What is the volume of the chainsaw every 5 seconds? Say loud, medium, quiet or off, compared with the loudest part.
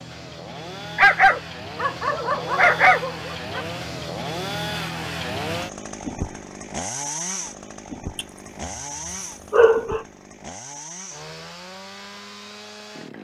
loud, loud, medium.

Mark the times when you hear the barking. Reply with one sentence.
You can hear the barking from 0.9 to 3.6 s and from 9.5 to 10.0 s.